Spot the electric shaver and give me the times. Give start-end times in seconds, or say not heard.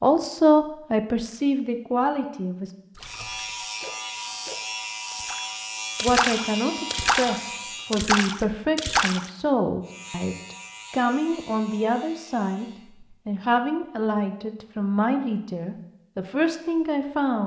3.0-8.0, 9.8-12.9.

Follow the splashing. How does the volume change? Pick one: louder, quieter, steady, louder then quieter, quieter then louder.
louder.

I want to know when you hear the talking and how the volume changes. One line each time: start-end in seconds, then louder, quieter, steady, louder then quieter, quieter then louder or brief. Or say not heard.
0.0-2.7 brief
6.0-17.4 steady.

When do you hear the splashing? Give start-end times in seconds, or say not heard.
2.9-9.3.